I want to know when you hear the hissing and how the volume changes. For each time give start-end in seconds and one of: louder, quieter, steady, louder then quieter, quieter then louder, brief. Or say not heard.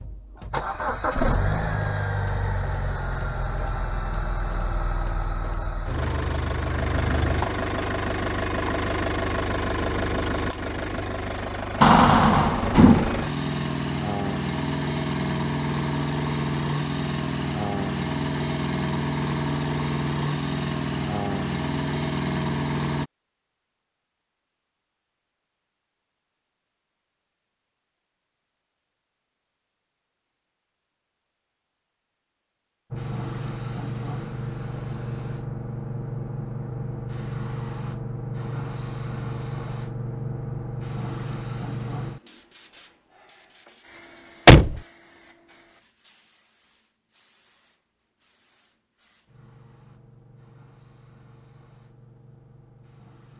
32.9-53.3 quieter then louder.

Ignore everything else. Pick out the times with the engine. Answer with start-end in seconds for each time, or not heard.
0.0-23.1.